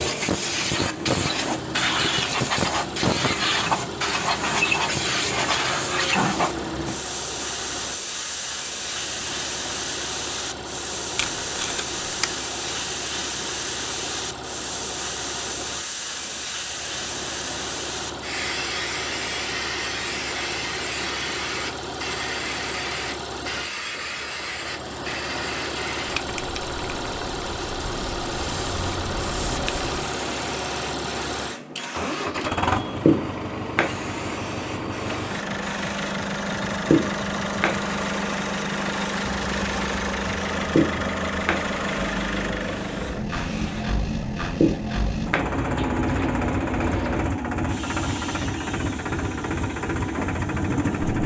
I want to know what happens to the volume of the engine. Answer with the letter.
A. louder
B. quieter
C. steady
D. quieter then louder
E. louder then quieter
A.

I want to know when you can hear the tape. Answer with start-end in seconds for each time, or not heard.
11.2-12.3.